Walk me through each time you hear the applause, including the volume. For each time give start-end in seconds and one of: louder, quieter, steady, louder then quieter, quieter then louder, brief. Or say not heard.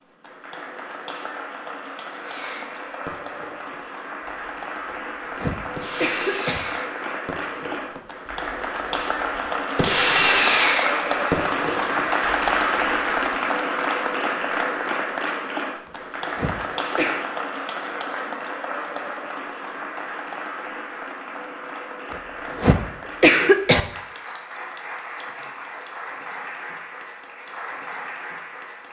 0.0-28.8 louder then quieter.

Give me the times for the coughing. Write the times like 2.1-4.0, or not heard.
4.8-6.6, 15.8-17.2, 22.1-23.8.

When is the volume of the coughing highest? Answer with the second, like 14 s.
23 s.